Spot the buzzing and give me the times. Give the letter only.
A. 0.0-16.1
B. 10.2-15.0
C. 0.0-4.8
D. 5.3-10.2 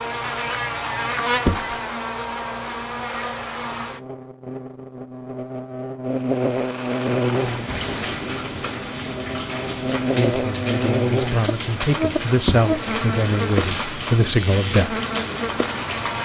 A.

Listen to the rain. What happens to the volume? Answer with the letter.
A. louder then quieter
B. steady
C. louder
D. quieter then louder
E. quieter
B.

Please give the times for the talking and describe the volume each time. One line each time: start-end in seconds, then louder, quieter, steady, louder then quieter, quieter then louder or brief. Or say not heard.
10.2-15.0 louder.